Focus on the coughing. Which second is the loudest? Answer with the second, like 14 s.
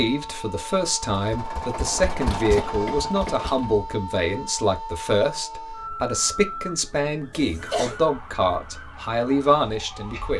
8 s.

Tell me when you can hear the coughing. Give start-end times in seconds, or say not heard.
2.5-3.5, 7.3-8.0.